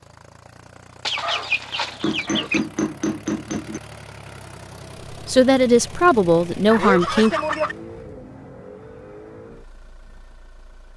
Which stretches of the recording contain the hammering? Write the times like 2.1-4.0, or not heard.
2.0-3.8.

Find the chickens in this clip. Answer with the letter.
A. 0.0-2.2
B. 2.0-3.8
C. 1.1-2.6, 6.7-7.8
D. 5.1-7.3
C.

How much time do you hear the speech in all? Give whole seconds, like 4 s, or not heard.
2 s.